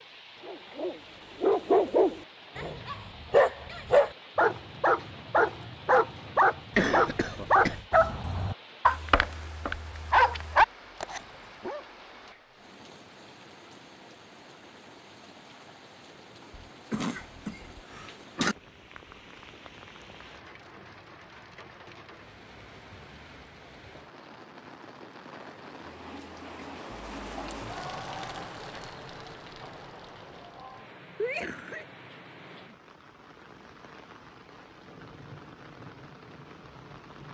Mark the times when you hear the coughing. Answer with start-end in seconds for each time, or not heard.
6.8-7.8, 16.6-18.6, 31.1-31.9.